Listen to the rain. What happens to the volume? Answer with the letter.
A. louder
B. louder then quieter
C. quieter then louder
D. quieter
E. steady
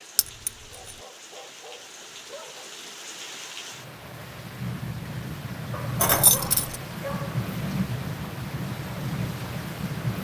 A.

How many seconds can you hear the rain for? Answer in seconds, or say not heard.
10 s.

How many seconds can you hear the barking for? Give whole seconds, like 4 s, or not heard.
4 s.